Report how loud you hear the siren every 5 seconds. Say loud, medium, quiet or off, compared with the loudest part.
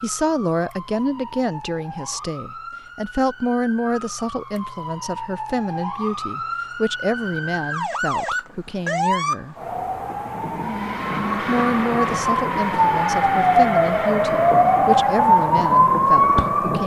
quiet, medium, loud, loud.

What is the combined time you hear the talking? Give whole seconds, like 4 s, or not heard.
15 s.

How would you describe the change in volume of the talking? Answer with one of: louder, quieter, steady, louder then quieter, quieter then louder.
steady.